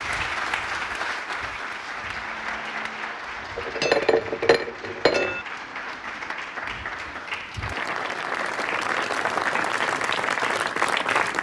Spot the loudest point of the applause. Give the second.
11 s.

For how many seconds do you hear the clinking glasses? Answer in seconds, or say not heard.
2 s.